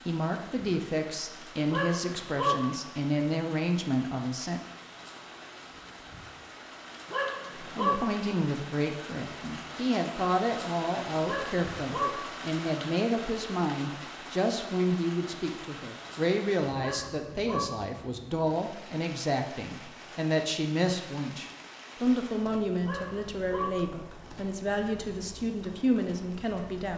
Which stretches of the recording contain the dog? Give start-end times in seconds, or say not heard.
1.7-2.6, 7.1-8.0, 11.2-12.1, 16.8-17.6, 22.8-23.7.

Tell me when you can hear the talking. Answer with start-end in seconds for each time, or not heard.
0.1-4.6, 7.5-26.9.